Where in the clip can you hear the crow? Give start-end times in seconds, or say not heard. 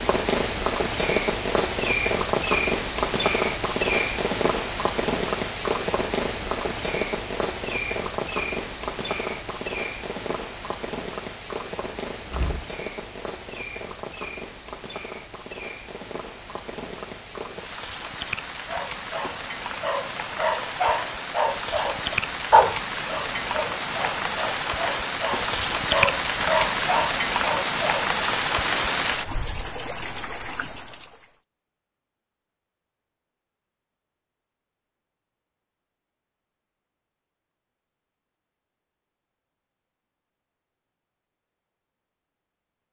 not heard.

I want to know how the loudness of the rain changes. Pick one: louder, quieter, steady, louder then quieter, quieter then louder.
quieter then louder.